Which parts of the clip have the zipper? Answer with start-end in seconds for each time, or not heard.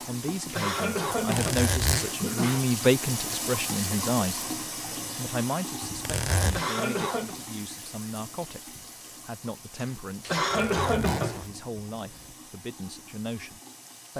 1.1-2.1, 5.8-6.7, 10.5-12.3.